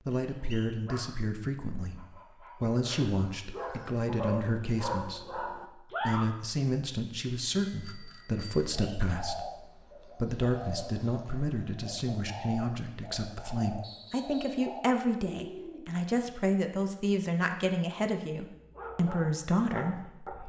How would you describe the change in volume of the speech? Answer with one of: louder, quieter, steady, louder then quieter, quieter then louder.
steady.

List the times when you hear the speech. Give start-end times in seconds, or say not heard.
0.1-5.5, 6.0-20.4.